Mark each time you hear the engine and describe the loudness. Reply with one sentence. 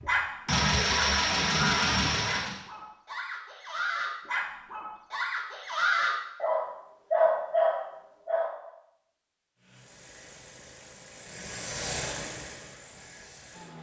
You can hear the engine briefly from 0.0 to 2.6 s; and from 9.6 to 13.7 s, getting louder then quieter.